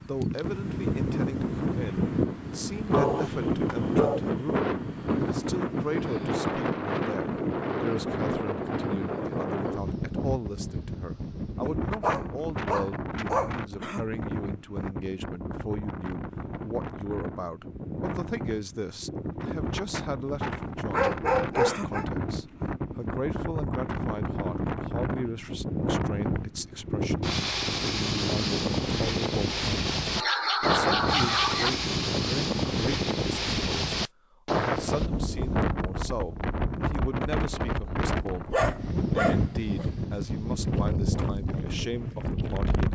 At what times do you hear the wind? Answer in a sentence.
You can hear the wind from 0.0 to 42.8 s.